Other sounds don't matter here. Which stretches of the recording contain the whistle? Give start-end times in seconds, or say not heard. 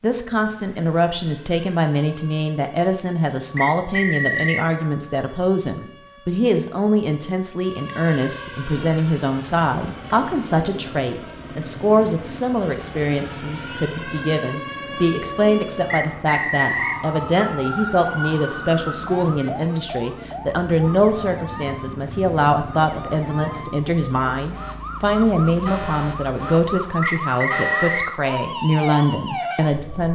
3.5-4.7, 15.9-17.0, 27.0-28.1.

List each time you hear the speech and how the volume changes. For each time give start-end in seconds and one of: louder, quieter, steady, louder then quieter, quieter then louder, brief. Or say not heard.
0.0-30.1 steady.